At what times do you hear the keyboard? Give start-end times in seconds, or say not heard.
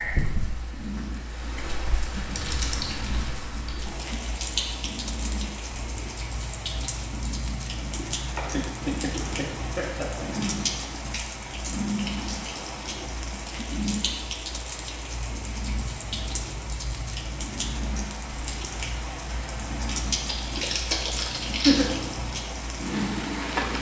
2.1-3.8, 20.2-21.9.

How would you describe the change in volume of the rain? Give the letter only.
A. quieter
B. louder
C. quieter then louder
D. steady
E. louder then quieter
D.